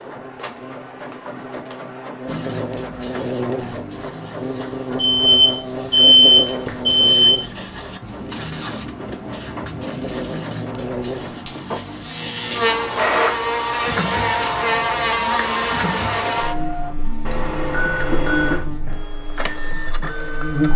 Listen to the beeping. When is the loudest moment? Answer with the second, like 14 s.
6 s.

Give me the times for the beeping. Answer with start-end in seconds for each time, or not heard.
5.0-7.5, 17.2-18.6.